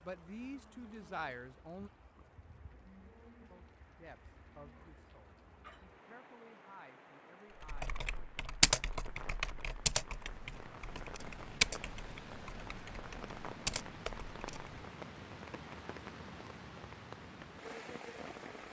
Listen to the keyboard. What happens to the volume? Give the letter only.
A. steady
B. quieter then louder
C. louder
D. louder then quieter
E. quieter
B.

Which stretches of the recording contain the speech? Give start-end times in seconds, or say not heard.
0.0-1.9, 3.5-8.3.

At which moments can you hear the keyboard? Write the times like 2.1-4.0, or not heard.
7.6-14.8.